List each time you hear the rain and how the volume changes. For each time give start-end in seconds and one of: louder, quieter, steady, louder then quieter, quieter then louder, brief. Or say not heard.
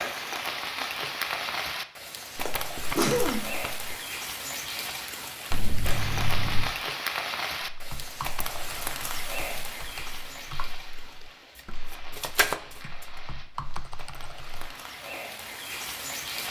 0.0-16.4 quieter.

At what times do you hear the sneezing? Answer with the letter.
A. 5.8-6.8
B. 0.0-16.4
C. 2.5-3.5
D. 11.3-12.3
C.